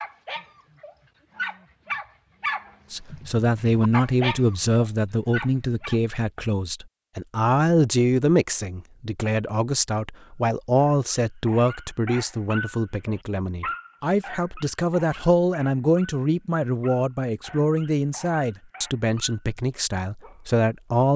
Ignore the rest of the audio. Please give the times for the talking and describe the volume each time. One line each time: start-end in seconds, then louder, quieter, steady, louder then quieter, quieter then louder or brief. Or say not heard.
2.9-21.1 steady.